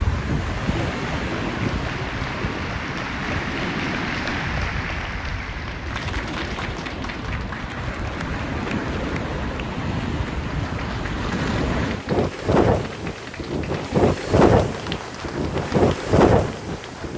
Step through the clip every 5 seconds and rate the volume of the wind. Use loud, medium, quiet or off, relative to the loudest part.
medium, medium, loud, loud.